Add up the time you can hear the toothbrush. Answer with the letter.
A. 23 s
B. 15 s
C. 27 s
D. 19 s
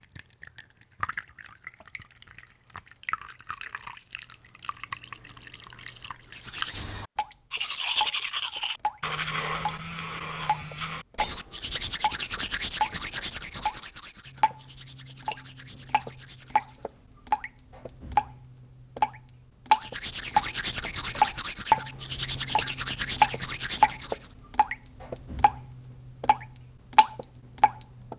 B.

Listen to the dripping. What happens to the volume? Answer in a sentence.
The loudness of the dripping goes up.